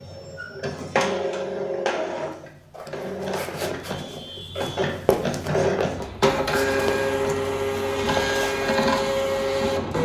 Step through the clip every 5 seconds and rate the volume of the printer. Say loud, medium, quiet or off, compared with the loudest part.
medium, loud.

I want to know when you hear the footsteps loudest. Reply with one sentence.
The volume of the footsteps peaks at 5 seconds.